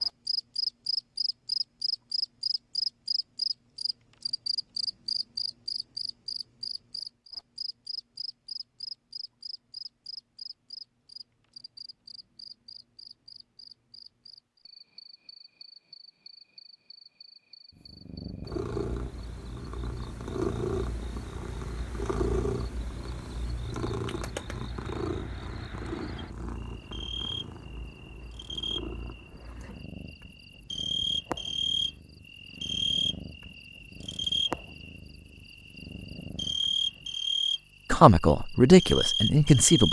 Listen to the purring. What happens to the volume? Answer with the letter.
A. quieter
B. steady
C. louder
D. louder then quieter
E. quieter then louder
A.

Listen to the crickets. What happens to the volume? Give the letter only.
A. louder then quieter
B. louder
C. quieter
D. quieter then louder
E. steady
D.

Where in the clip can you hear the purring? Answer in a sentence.
The purring can be heard from 17.7 to 37.1 s.